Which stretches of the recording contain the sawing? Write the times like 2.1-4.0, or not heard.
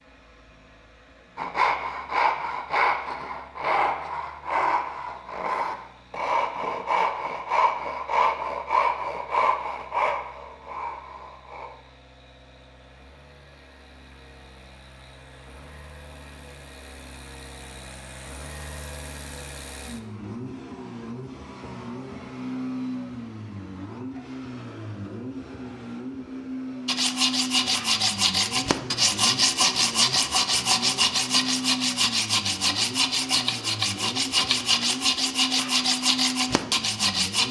1.4-11.7, 26.9-37.4.